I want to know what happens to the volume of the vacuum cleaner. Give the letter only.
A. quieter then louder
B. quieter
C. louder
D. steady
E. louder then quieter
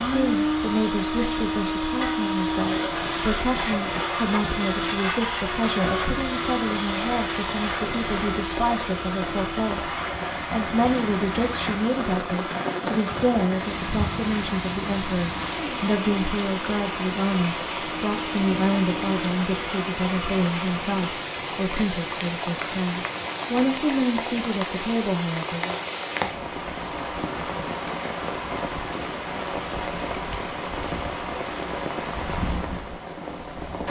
B.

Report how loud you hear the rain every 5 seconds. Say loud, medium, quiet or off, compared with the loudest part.
medium, medium, loud, loud, loud, loud, loud.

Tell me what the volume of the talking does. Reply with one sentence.
The volume of the talking stays about the same.